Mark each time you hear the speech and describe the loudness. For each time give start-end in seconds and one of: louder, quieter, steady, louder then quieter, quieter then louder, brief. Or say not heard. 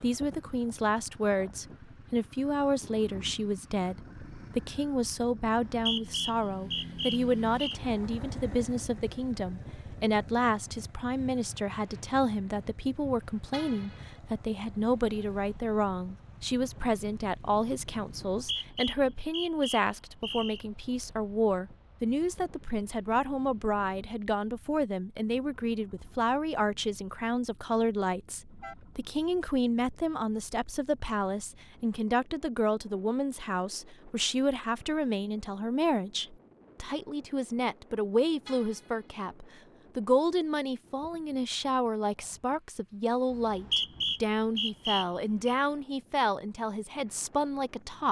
0.0-48.0 steady.